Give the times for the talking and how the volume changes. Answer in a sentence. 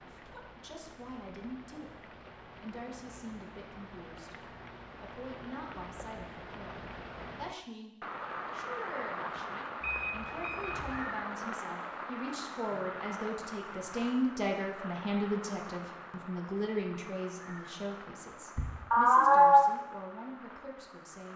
The talking can be heard from 0.0 to 21.3 s, getting louder then quieter.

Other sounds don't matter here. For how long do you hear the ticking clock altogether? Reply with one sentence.
You can't hear the ticking clock here.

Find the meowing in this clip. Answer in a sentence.
The meowing can be heard from 18.6 to 19.6 s.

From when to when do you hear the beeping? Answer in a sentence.
The beeping can be heard from 9.8 to 11.0 s.